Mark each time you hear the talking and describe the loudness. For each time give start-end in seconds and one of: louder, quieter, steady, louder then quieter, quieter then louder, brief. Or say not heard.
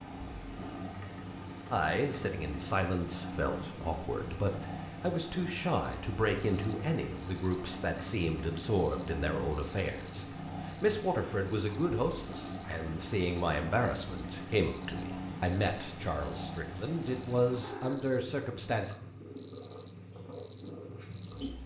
1.7-18.9 steady.